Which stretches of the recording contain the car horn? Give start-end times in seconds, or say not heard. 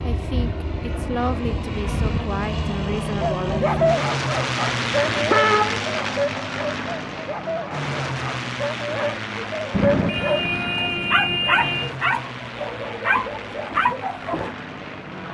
4.6-5.8, 9.7-11.9.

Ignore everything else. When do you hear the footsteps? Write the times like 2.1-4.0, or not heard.
not heard.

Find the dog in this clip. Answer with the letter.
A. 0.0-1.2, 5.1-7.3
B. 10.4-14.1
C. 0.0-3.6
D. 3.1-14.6
D.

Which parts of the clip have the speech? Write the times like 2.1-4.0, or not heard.
0.0-3.6.